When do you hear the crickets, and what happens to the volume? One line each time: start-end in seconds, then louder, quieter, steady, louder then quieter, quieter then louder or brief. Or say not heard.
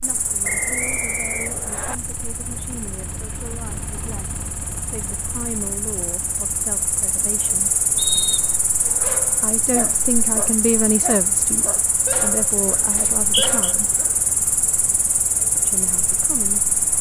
0.0-16.9 louder.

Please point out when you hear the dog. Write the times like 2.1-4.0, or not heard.
8.8-14.2.